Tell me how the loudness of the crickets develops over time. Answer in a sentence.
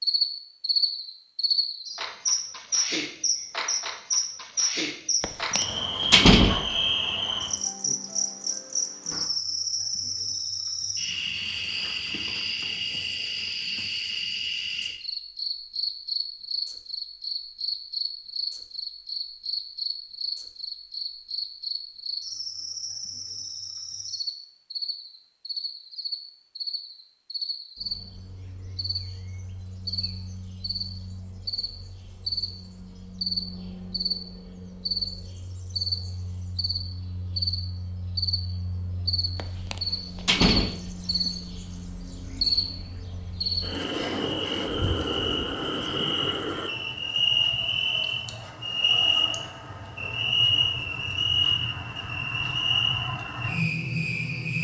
The loudness of the crickets goes down, then up.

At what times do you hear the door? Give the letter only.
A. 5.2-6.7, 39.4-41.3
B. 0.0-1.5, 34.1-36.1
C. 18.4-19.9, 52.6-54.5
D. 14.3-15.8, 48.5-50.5
A.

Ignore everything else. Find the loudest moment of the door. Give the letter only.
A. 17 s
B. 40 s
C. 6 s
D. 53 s
C.